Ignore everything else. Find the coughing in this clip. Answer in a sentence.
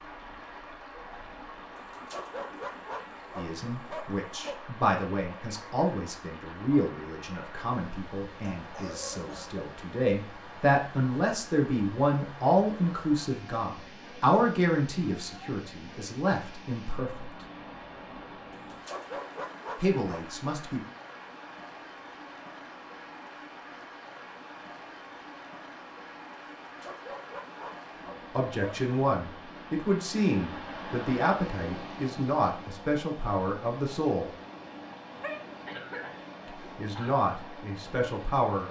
You can hear the coughing from 8.4 to 9.6 s and from 35.1 to 37.1 s.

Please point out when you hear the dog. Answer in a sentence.
You can hear the dog from 1.8 to 4.5 s, from 18.5 to 20.3 s and from 26.6 to 28.9 s.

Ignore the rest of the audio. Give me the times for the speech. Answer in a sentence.
You can hear the speech from 3.4 to 17.3 s, from 19.8 to 20.8 s, from 28.4 to 34.3 s and from 36.5 to 38.6 s.